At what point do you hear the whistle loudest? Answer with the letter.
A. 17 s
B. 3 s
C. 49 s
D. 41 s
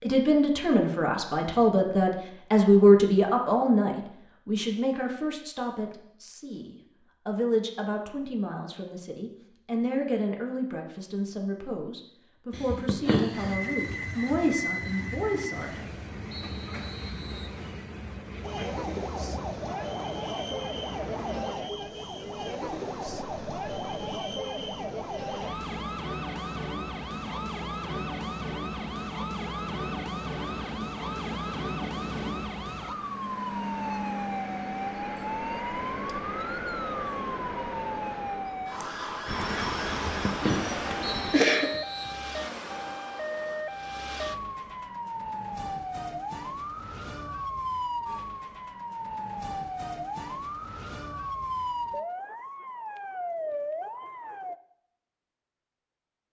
D.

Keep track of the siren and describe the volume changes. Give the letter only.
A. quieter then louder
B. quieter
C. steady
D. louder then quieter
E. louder
C.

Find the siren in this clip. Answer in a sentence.
You can hear the siren from 18.4 to 54.5 s.